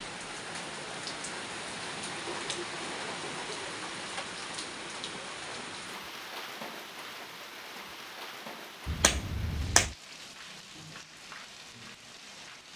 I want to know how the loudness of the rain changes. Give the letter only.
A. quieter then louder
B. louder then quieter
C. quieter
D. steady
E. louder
C.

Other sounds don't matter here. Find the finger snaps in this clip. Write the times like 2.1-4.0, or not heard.
8.8-9.9.